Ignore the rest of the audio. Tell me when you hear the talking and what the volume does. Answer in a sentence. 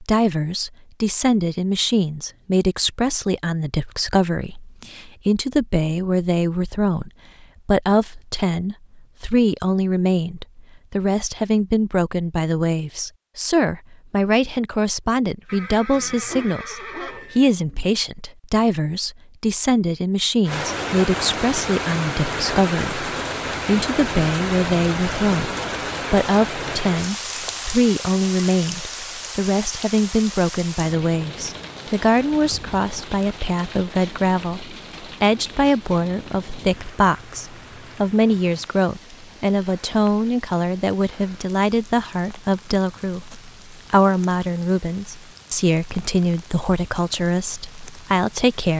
The talking can be heard from 0.0 to 48.7 s, at a steady volume.